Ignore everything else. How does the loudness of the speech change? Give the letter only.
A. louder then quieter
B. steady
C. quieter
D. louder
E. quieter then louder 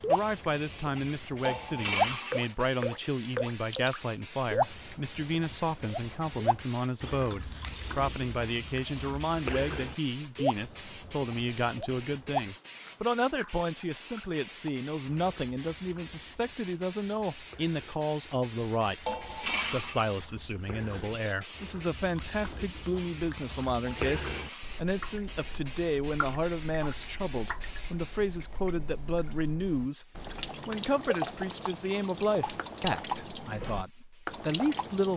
B.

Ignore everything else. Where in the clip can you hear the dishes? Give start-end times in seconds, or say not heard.
1.4-2.4, 19.1-20.1, 23.9-24.8.